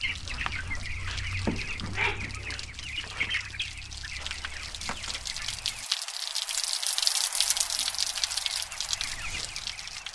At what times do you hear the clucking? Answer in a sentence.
You can hear the clucking from 0.0 to 5.8 s and from 7.3 to 10.1 s.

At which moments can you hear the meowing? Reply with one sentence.
The meowing can be heard from 1.4 to 2.4 s.